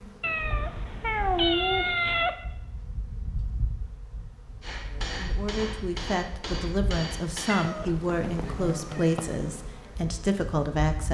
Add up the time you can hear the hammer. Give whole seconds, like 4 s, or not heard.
3 s.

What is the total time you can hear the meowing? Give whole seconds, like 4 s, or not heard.
4 s.